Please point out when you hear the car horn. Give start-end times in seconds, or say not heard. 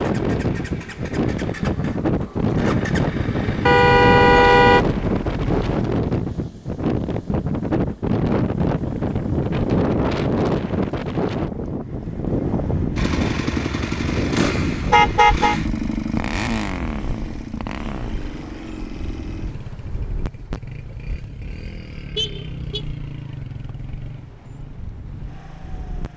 3.6-4.8, 14.9-15.6, 22.1-22.9.